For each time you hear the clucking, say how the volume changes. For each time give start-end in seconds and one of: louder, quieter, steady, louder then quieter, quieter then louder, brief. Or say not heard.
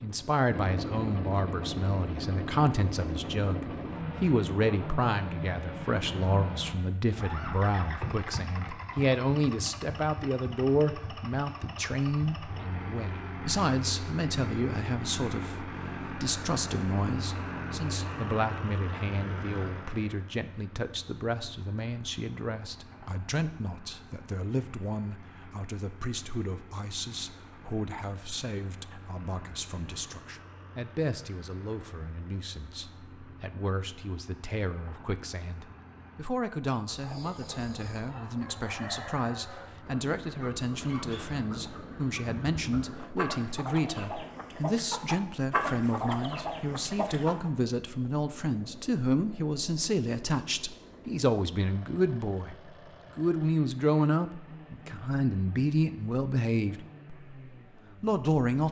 36.9-47.5 louder.